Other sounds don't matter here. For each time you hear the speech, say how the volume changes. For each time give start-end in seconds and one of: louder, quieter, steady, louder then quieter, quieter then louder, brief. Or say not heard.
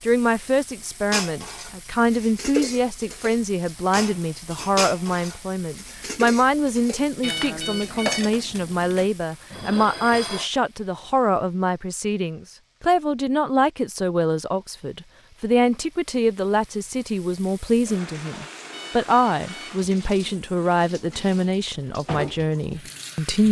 0.1-23.4 steady.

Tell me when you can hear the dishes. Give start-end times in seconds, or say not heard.
1.1-10.5.